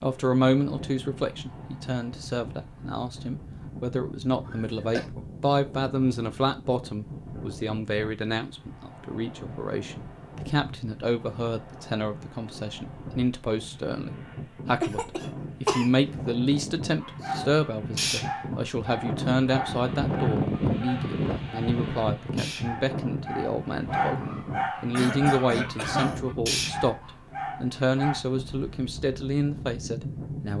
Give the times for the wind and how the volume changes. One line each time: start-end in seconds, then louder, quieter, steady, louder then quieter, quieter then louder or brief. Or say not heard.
0.0-30.5 louder then quieter.